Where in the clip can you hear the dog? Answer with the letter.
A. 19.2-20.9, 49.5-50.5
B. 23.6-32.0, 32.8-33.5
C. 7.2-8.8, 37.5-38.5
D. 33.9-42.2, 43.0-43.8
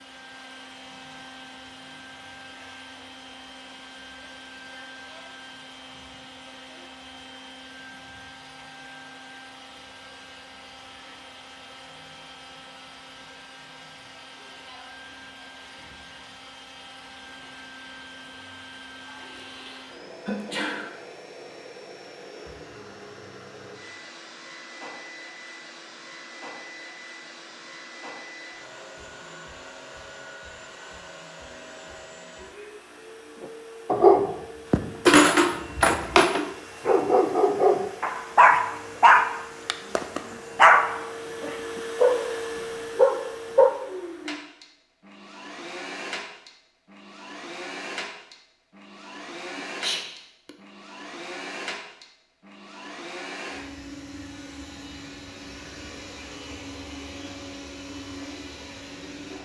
D.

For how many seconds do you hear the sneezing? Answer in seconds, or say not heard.
3 s.